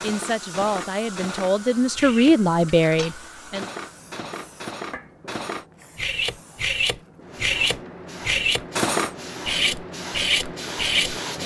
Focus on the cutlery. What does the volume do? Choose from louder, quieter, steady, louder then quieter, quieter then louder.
louder.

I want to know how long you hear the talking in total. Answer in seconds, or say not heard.
4 s.